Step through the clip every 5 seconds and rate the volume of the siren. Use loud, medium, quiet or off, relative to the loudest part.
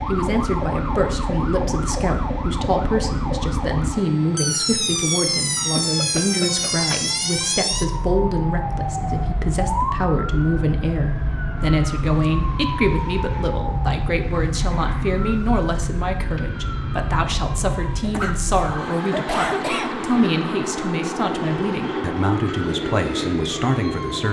loud, loud, loud, medium, medium.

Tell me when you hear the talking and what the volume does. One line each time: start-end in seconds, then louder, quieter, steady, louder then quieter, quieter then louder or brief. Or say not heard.
0.1-24.2 steady.